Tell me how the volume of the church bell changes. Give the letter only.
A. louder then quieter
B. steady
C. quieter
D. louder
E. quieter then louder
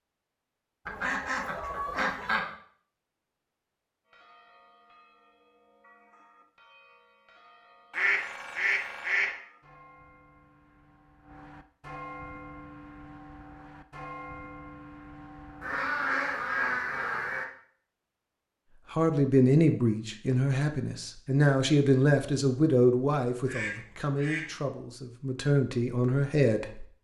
D.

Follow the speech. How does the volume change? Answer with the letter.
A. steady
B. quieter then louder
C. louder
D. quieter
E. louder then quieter
B.